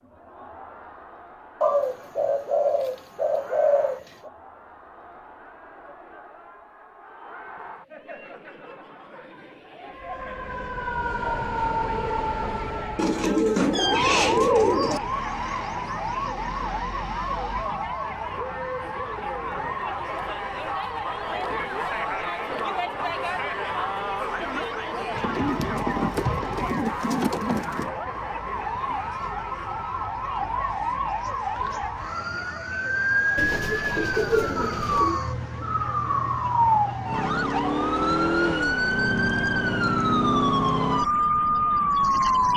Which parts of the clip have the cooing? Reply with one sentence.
You can hear the cooing from 1.6 to 4.3 s, from 12.9 to 15.0 s, from 25.1 to 27.9 s and from 33.4 to 35.2 s.